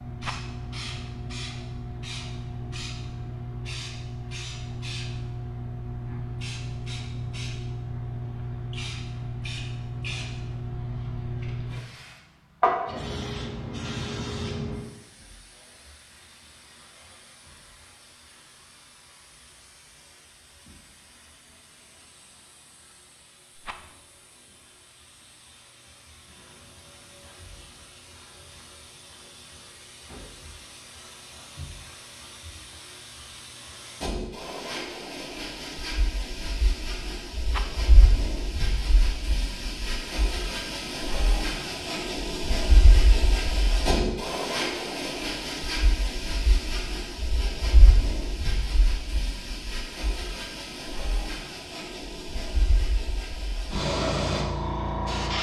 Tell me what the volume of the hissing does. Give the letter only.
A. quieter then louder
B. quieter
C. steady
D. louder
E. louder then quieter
A.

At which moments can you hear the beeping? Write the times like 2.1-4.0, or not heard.
not heard.